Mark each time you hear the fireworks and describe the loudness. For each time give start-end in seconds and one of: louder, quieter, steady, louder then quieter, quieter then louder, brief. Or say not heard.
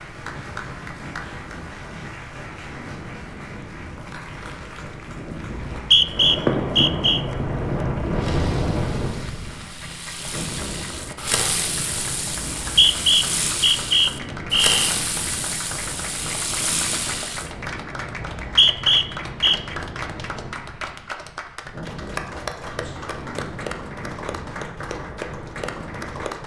6.2-17.5 quieter then louder.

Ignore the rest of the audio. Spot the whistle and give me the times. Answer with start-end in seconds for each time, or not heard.
5.6-7.2, 12.6-14.8, 18.3-19.6.